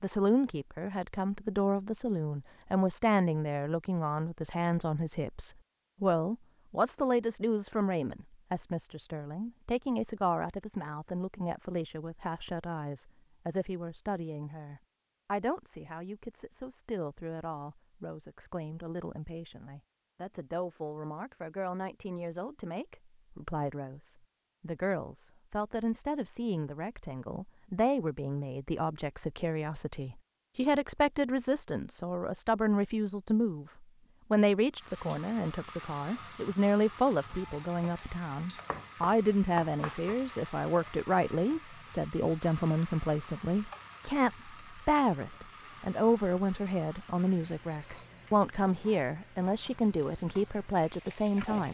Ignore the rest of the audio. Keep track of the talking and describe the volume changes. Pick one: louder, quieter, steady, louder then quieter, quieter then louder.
quieter then louder.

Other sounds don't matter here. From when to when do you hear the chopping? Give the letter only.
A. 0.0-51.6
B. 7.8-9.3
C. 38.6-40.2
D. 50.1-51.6
C.